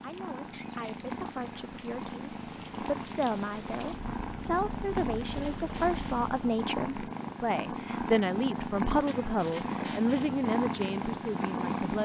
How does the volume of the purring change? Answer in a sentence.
The loudness of the purring goes up.